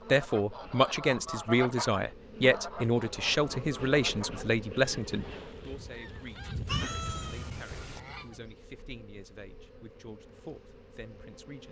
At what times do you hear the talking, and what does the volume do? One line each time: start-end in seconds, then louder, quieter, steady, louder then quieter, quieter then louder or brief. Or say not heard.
0.1-11.6 quieter.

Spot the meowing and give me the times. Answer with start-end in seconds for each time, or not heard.
6.7-8.0.